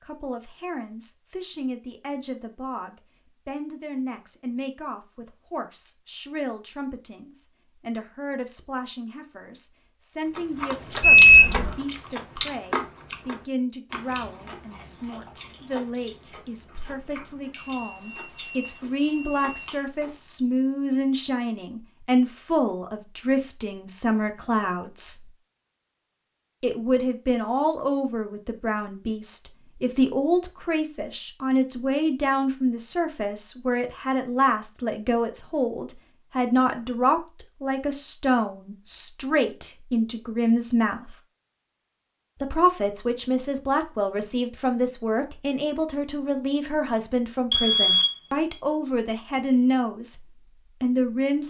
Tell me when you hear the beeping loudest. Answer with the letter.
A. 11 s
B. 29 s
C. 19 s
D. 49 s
A.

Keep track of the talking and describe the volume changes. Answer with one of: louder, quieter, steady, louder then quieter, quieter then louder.
louder.